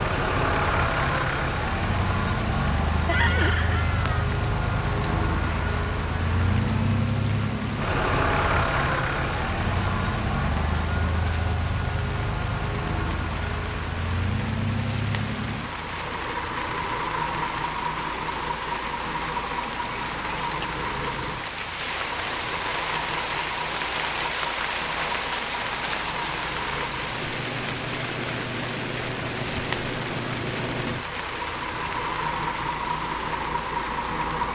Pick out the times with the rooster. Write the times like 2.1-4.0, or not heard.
3.0-4.3.